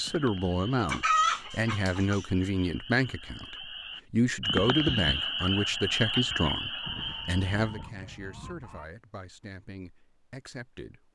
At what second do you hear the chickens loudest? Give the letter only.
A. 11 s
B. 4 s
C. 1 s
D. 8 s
C.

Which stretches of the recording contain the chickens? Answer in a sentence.
The chickens can be heard from 0.8 to 2.2 s and from 6.8 to 8.8 s.